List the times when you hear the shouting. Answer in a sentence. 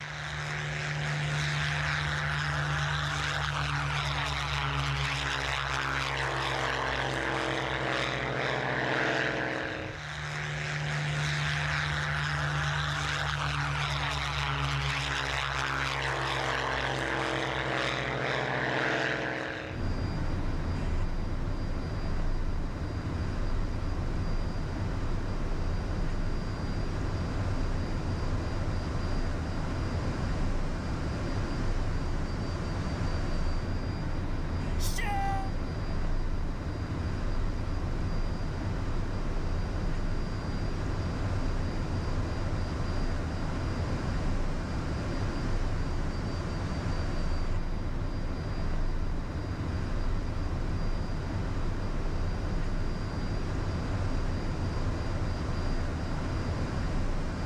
You can hear the shouting from 34.8 to 35.5 s.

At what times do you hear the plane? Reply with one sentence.
You can hear the plane from 0.0 to 57.4 s.